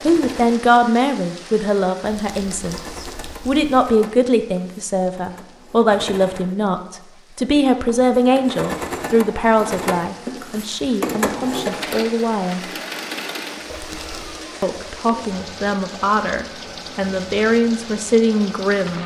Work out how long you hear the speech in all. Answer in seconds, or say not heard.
17 s.